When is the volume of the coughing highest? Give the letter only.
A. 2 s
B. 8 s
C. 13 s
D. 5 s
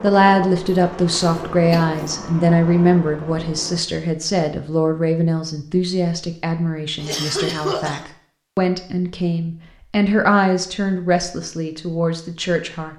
B.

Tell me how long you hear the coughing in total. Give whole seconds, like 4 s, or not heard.
2 s.